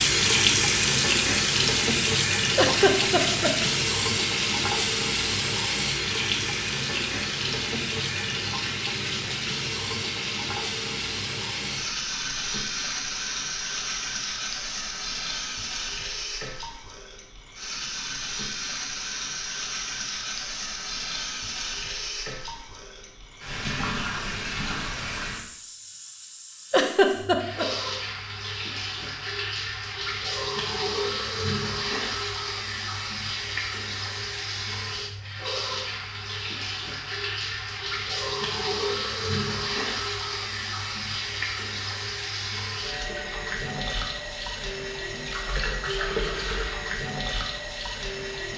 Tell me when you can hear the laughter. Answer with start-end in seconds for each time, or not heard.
2.5-3.5, 26.7-27.6.